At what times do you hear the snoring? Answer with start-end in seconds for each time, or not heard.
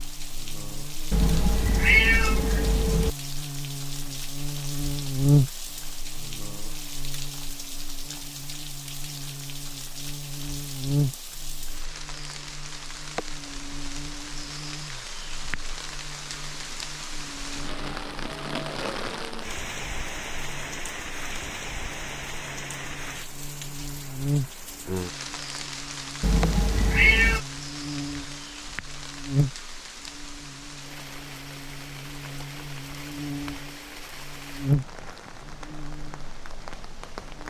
not heard.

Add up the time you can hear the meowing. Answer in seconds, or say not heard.
3 s.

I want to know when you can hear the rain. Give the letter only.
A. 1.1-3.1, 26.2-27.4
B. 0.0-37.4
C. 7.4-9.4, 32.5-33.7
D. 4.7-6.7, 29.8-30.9
B.